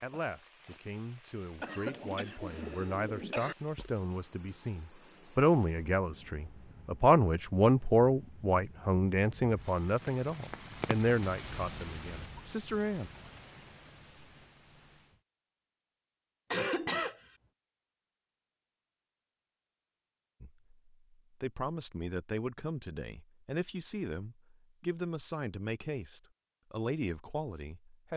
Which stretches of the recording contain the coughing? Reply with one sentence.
You can hear the coughing from 1.6 to 3.5 s and from 16.5 to 17.2 s.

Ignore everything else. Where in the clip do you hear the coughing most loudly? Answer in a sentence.
The volume of the coughing peaks at 17 seconds.